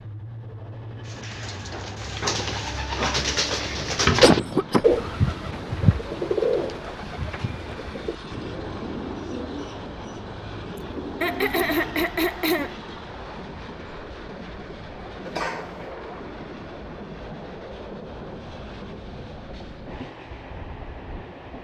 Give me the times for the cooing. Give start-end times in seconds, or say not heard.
1.1-12.1.